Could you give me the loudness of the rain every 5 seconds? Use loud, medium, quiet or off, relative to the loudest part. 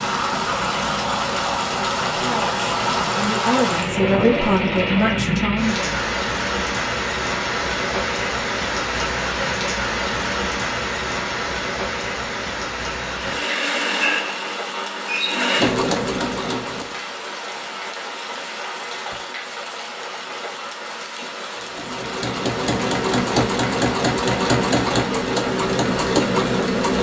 loud, loud, loud, medium, medium, medium.